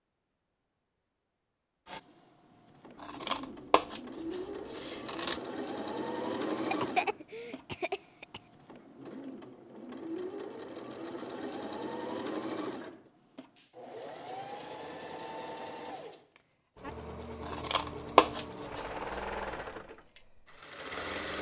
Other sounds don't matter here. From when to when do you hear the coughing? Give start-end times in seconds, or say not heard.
6.5-8.4.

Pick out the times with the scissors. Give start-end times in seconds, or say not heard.
3.0-5.4, 17.4-18.9.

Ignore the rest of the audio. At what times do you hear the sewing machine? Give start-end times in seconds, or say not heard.
1.9-21.3.